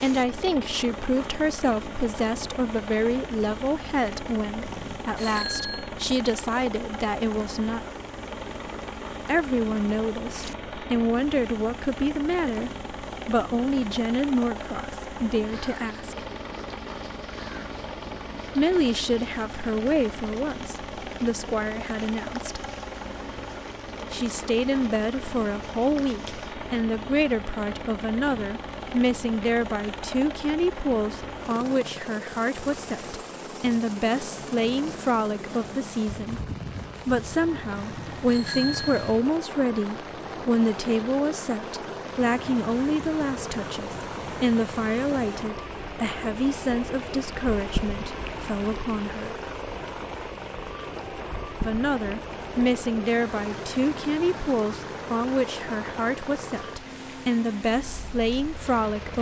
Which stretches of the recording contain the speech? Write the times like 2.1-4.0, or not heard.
0.0-7.8, 9.2-16.2, 18.6-22.6, 24.1-36.4, 37.0-49.4, 51.6-59.1.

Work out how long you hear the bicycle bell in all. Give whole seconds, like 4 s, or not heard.
3 s.